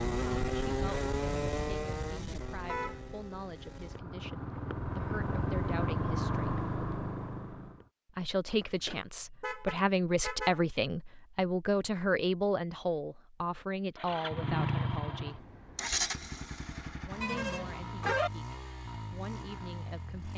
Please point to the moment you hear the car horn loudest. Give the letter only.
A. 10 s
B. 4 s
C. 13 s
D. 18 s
D.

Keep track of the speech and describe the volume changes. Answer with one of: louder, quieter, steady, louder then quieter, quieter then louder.
louder then quieter.